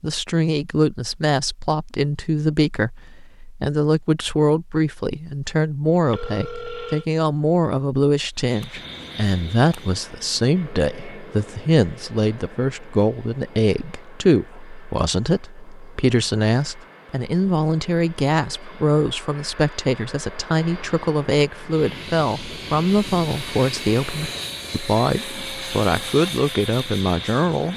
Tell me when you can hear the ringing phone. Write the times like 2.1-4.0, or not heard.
6.1-7.0.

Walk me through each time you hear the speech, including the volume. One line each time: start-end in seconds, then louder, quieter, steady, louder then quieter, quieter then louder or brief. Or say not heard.
0.0-27.7 steady.